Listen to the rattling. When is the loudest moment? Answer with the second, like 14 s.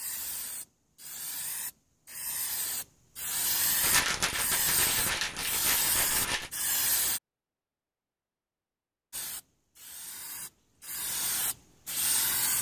4 s.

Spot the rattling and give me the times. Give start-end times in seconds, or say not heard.
3.8-6.5.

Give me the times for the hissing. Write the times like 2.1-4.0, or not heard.
0.0-7.2, 9.1-12.5.